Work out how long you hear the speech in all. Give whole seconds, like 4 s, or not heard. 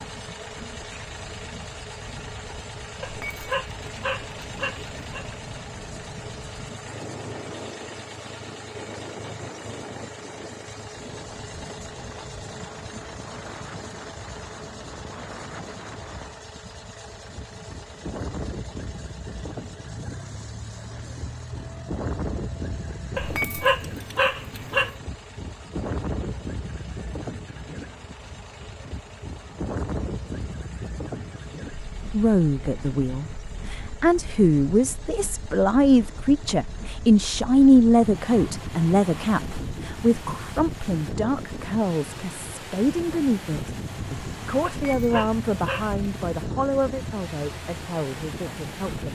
17 s.